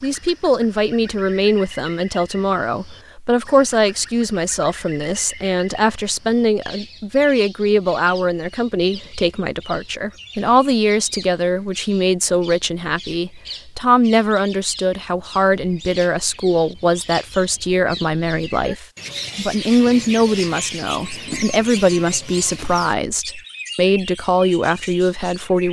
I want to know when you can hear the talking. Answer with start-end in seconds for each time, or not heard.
0.0-25.6.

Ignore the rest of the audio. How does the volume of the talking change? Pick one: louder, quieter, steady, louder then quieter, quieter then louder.
steady.